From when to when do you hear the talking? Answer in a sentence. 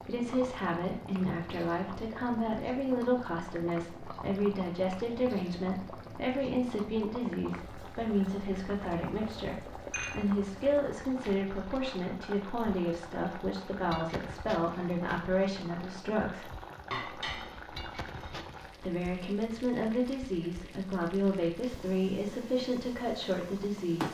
The talking can be heard from 0.1 to 16.5 s and from 18.8 to 24.0 s.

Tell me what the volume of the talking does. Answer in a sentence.
The volume of the talking stays about the same.